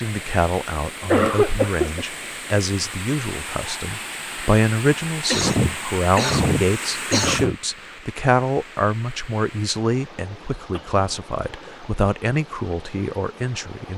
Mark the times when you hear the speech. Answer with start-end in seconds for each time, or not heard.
0.0-13.9.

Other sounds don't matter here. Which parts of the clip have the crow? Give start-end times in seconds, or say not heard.
not heard.